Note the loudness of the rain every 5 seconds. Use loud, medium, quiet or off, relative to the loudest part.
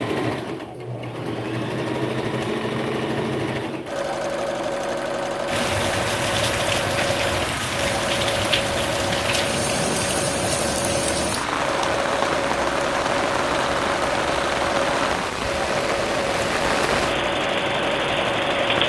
off, loud, loud, loud.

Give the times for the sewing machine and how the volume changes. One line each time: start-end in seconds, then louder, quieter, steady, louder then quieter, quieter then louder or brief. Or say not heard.
0.0-18.8 steady.